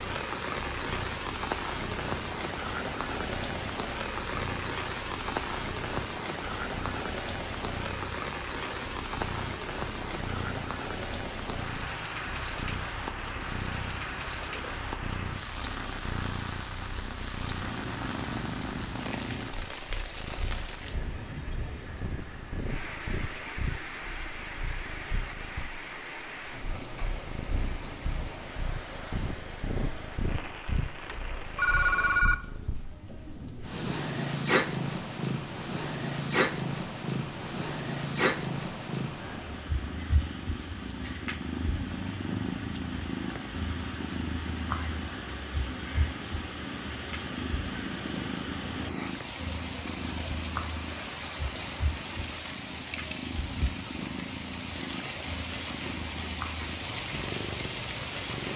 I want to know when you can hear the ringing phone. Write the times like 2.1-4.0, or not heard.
31.1-32.4.